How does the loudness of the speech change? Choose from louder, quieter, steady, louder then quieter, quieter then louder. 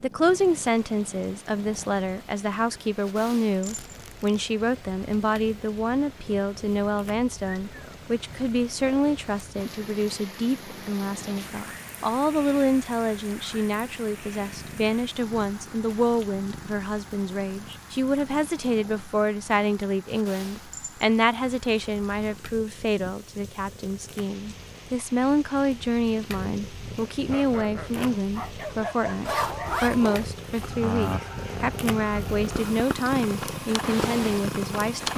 steady.